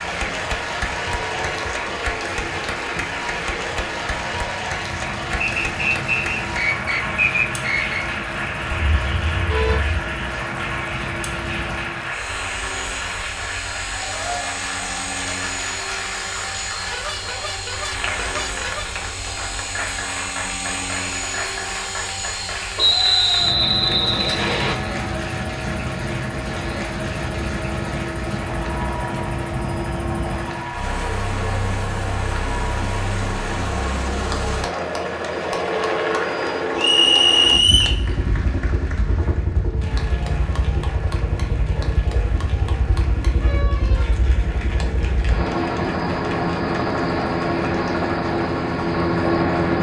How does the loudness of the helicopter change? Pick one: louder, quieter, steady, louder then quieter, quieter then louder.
louder.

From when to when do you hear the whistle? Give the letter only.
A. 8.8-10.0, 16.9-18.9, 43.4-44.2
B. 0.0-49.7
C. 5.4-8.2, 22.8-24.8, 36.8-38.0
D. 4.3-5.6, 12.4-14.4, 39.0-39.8
C.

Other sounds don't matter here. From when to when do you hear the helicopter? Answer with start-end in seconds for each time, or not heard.
0.0-49.7.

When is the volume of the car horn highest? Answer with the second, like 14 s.
10 s.